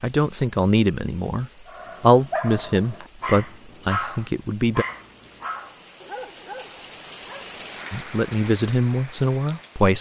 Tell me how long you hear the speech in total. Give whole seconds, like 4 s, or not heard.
7 s.